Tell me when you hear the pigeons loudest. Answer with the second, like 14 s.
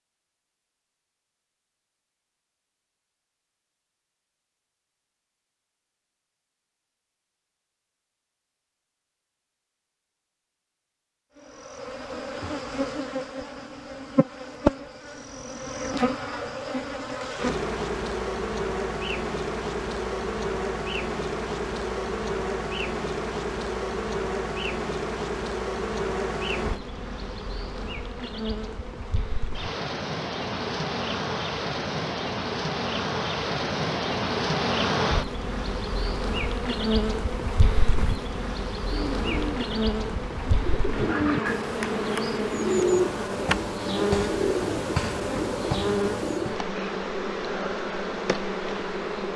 43 s.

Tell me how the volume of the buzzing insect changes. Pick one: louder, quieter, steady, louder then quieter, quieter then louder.
steady.